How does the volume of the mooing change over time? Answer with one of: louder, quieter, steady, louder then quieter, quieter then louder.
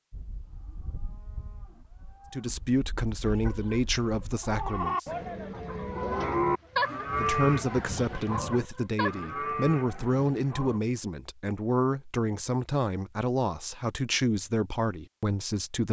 louder then quieter.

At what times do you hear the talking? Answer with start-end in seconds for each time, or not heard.
2.3-5.0, 7.2-15.8.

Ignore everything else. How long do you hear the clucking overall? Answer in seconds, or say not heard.
6 s.